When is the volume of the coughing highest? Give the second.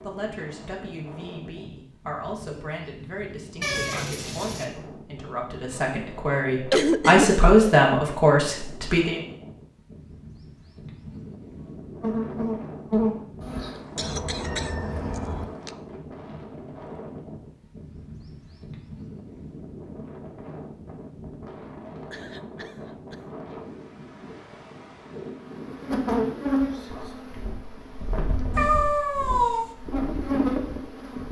7 s.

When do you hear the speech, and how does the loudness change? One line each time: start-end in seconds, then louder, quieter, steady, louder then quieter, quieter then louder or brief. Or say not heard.
0.0-9.2 louder.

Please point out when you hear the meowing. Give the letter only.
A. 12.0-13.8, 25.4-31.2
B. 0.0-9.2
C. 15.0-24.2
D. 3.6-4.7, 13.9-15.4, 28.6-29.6
D.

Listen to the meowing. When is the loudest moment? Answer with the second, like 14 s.
29 s.